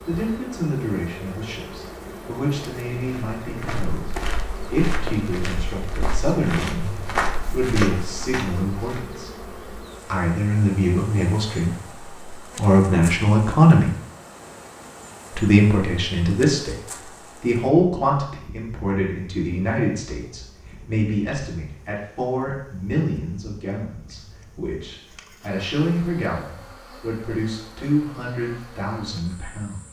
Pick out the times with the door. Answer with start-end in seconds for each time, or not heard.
not heard.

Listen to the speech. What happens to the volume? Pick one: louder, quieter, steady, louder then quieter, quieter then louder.
louder then quieter.